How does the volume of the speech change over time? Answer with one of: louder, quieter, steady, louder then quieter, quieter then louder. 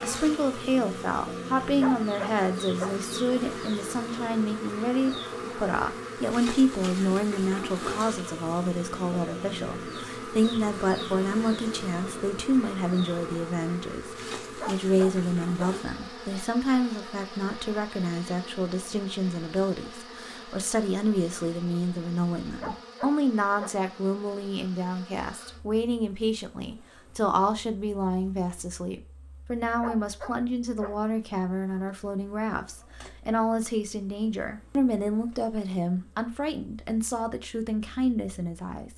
steady.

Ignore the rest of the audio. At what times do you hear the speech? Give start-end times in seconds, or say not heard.
0.0-38.9.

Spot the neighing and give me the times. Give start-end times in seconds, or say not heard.
not heard.